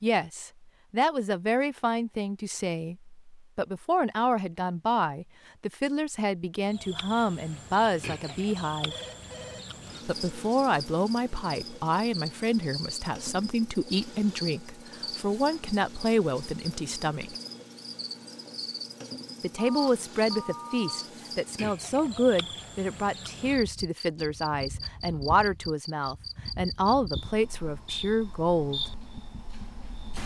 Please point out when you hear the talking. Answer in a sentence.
The talking can be heard from 0.0 to 8.9 s, from 10.1 to 17.4 s and from 19.4 to 28.8 s.